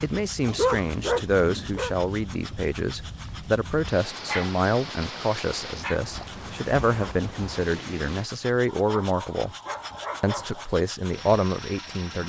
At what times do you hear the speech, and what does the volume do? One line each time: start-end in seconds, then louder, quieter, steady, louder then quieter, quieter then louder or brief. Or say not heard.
0.0-9.5 steady
10.2-12.2 brief.